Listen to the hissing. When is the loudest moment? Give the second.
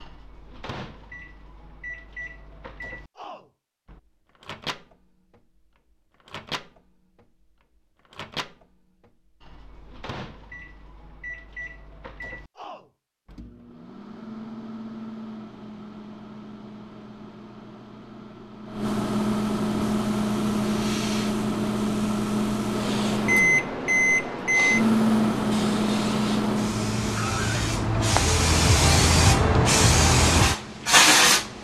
31 s.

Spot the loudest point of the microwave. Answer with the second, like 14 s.
25 s.